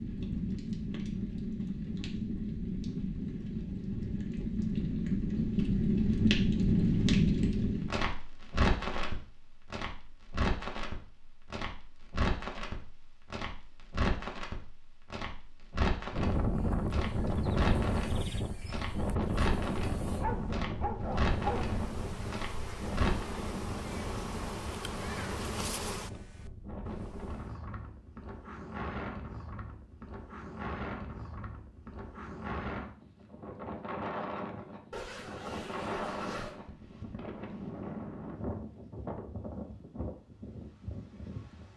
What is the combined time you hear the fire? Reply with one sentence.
The fire can be heard for 23 seconds in total.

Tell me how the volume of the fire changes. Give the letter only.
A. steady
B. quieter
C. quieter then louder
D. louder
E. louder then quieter
E.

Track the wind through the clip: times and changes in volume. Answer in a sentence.
The wind can be heard from 16.1 to 41.7 s, getting quieter.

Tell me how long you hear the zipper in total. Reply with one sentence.
The zipper can be heard for 2 seconds in total.